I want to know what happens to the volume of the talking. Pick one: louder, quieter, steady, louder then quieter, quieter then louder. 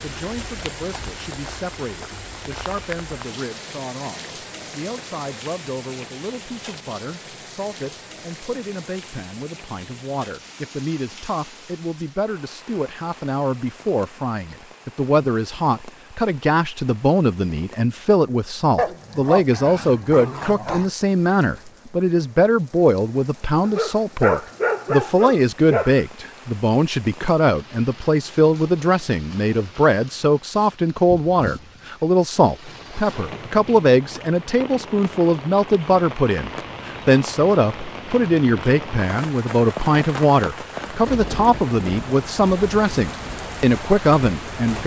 louder.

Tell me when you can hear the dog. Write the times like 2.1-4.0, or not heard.
18.8-20.9, 23.6-26.0.